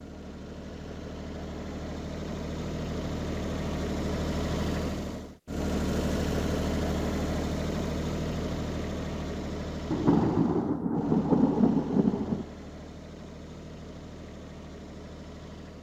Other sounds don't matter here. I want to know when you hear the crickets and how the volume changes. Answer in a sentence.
The crickets can't be heard in this clip.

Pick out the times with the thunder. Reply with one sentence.
You can hear the thunder from 9.9 to 12.4 s.